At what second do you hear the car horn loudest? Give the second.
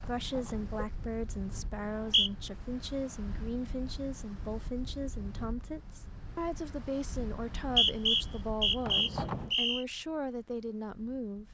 9 s.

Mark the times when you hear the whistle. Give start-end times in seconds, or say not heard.
1.7-2.3, 7.3-9.8.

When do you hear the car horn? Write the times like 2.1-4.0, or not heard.
0.0-0.7, 8.8-9.6.